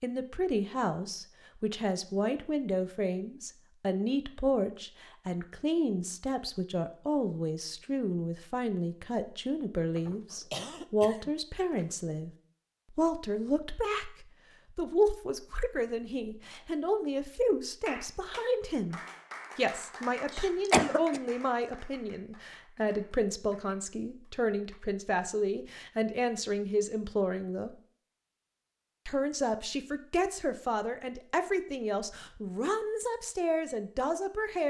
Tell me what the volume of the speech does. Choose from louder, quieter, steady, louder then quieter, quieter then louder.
steady.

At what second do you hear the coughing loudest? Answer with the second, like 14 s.
21 s.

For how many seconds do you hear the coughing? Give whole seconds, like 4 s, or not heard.
3 s.